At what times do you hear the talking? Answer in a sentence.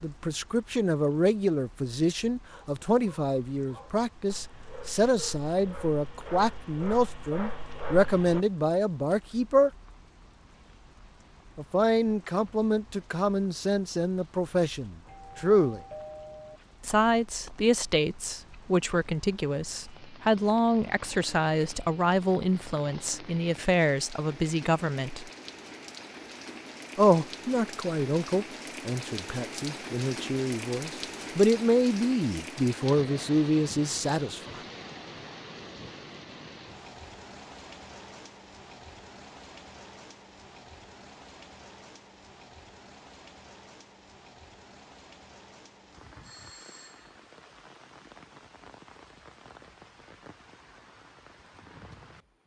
You can hear the talking from 0.0 to 9.7 s, from 11.6 to 15.8 s, from 16.9 to 25.3 s and from 26.9 to 34.6 s.